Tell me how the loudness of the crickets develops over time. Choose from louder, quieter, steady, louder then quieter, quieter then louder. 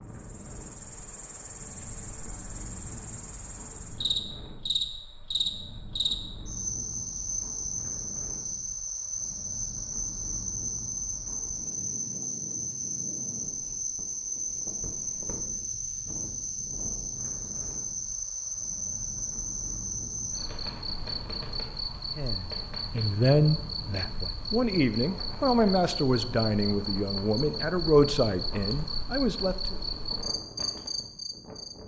steady.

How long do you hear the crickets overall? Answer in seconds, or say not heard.
32 s.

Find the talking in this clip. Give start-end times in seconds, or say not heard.
22.1-29.8.